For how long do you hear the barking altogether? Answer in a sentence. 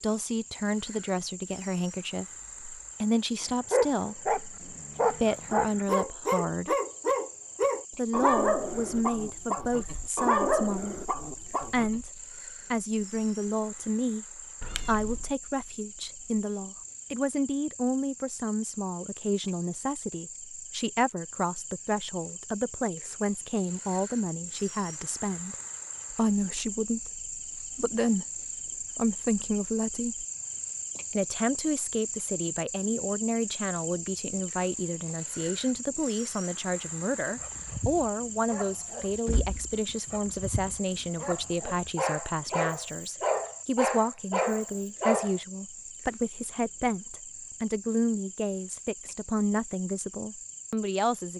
You can hear the barking for 16 seconds altogether.